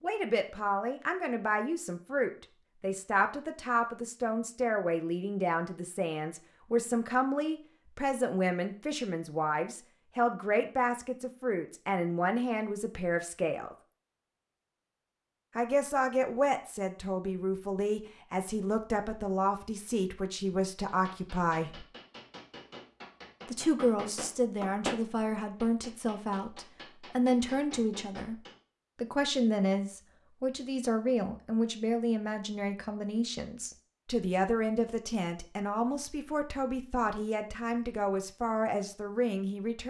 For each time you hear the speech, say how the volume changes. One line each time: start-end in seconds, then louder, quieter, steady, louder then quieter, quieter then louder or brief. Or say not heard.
0.0-13.8 steady
15.6-21.9 steady
23.4-39.8 steady.